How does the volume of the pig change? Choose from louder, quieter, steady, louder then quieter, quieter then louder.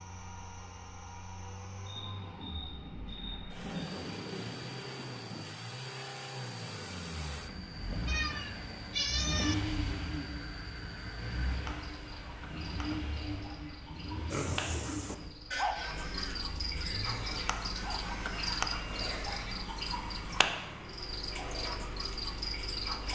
quieter.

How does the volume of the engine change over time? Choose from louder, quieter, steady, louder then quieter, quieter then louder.
louder then quieter.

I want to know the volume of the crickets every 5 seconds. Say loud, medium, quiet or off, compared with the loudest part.
quiet, quiet, medium, loud, loud.